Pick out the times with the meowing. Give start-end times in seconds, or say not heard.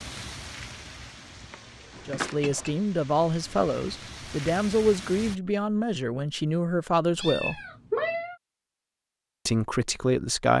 1.5-2.8, 7.2-8.3.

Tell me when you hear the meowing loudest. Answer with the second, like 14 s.
8 s.